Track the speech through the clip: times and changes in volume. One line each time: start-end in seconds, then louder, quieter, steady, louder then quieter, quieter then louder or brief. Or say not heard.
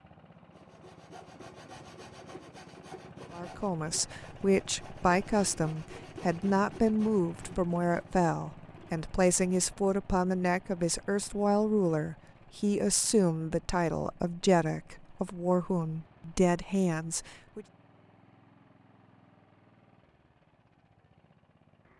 3.3-17.6 steady.